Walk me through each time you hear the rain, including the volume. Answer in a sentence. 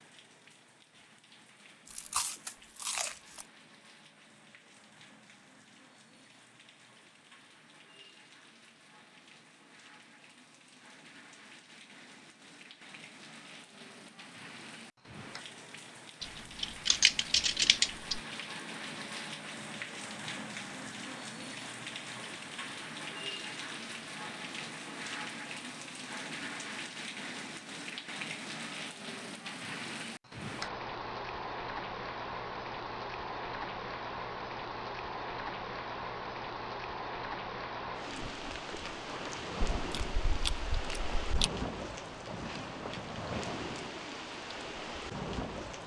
You can hear the rain from 0.0 to 45.8 s, getting louder.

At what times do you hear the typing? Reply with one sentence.
The typing can be heard from 16.2 to 18.2 s.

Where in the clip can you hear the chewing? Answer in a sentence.
You can hear the chewing from 1.9 to 3.5 s and from 39.8 to 41.5 s.